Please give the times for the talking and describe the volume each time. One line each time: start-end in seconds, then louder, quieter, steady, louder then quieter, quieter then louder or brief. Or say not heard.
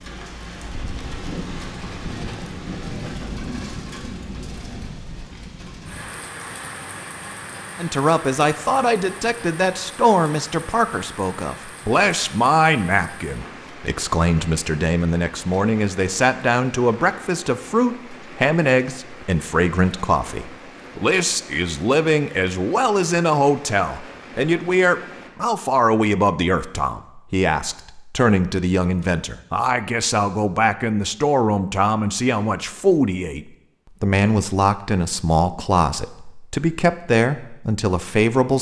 7.8-38.5 steady.